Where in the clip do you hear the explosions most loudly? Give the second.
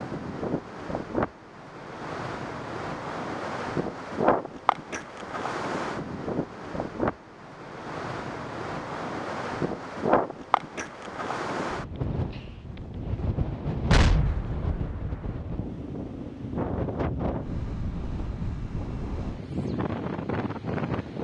14 s.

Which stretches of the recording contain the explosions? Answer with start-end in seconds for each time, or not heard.
13.9-15.4.